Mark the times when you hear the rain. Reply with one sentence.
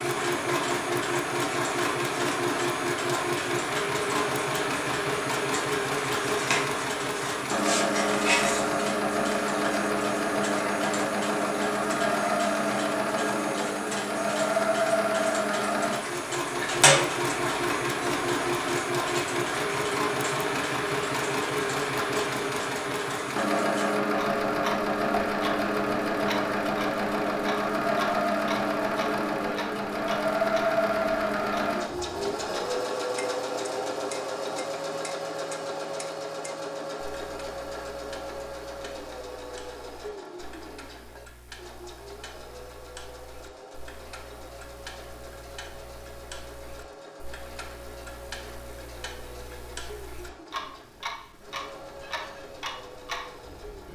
You can't hear the rain here.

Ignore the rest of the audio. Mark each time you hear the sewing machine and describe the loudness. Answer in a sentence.
You can hear the sewing machine from 0.0 to 53.9 s, getting quieter.